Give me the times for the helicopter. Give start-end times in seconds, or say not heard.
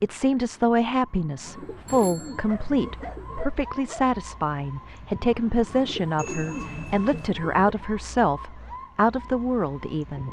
not heard.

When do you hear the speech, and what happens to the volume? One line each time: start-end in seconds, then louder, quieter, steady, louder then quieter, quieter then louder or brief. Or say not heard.
0.0-10.2 steady.